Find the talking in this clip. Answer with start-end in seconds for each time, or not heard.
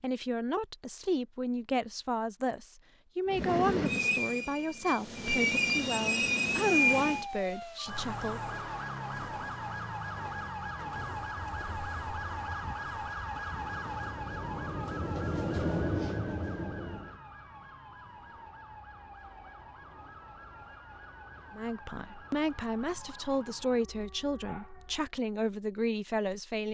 0.0-8.4, 21.5-26.6.